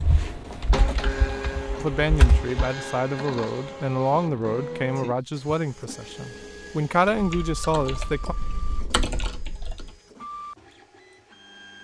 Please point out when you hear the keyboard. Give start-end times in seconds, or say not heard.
0.0-2.5, 7.1-9.9.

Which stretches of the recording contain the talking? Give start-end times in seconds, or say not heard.
1.8-8.3.